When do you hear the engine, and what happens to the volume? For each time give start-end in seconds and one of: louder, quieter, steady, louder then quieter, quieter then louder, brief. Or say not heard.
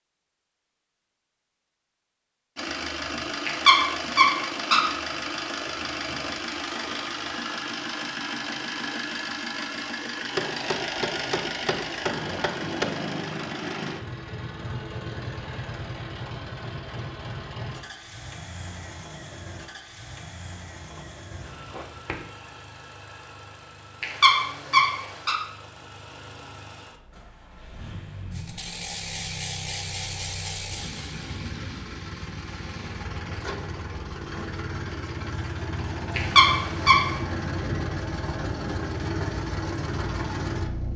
2.5-40.9 quieter then louder.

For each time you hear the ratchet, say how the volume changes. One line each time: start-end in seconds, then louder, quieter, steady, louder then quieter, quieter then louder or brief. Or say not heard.
28.3-33.6 quieter.